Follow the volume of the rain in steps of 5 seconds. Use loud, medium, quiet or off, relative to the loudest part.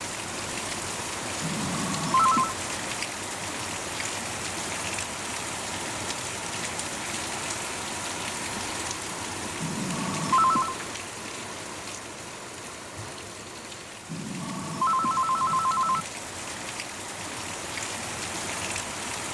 loud, loud, medium, loud.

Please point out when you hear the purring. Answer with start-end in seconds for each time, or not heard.
not heard.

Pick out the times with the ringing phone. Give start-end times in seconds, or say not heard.
1.4-2.5, 9.6-10.8, 14.1-16.1.